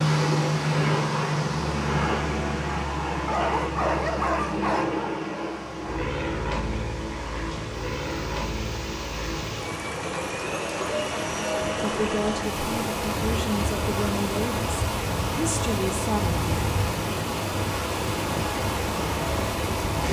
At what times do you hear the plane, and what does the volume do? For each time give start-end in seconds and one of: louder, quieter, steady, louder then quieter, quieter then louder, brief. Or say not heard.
0.0-20.0 quieter.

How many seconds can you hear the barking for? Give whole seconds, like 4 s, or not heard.
2 s.